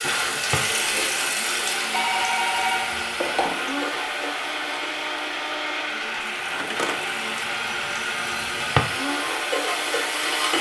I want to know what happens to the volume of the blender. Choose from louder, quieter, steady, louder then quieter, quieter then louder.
steady.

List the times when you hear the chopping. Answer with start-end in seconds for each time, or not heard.
not heard.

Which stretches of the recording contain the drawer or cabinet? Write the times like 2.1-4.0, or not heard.
0.2-0.7, 8.4-8.9.